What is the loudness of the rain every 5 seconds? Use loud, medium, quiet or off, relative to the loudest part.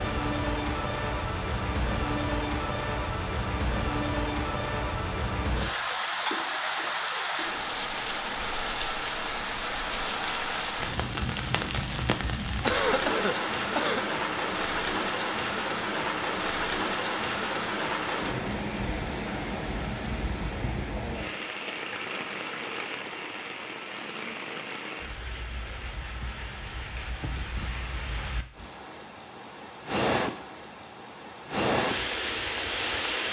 loud, loud, loud, loud, medium, medium, loud.